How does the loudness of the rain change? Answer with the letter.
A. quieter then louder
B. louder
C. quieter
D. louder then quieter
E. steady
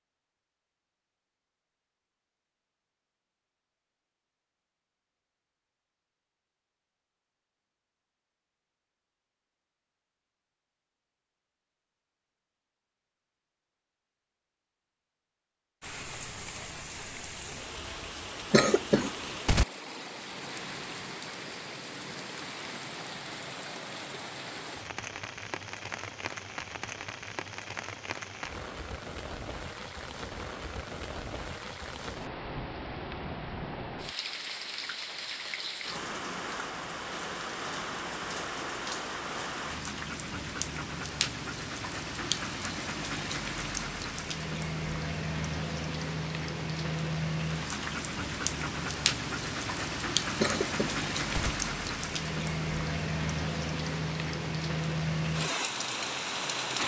B.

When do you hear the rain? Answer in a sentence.
The rain can be heard from 15.8 to 56.8 s.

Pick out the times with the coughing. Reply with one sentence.
You can hear the coughing from 18.5 to 19.6 s and from 50.4 to 51.5 s.